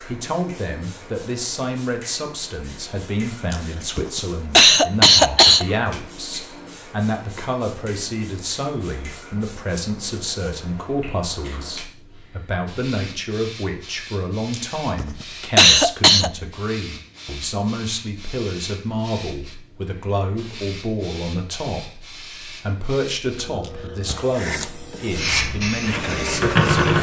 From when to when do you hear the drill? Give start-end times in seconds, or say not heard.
24.3-26.9.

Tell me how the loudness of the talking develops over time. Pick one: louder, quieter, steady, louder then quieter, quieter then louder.
steady.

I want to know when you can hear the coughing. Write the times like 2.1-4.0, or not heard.
3.5-5.7, 14.5-16.3, 23.6-24.4.